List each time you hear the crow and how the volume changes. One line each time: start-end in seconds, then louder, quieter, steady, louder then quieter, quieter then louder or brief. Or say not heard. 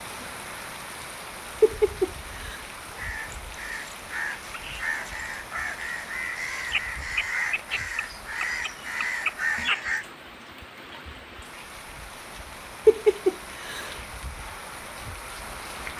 2.9-10.1 louder.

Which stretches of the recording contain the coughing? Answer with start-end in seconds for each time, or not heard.
1.6-2.6, 12.8-13.9.